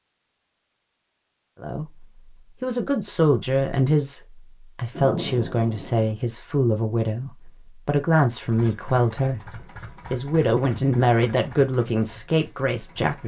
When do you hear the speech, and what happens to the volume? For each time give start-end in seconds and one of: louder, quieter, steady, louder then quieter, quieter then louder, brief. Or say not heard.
1.6-13.2 steady.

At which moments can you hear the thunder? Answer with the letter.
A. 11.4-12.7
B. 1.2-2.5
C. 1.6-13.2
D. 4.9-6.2
D.